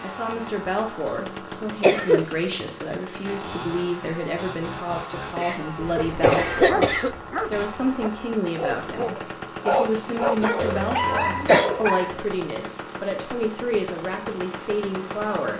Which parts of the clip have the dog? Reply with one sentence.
The dog can be heard from 5.8 to 12.2 s.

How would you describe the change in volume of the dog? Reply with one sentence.
The volume of the dog goes up.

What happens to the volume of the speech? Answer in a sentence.
The volume of the speech stays about the same.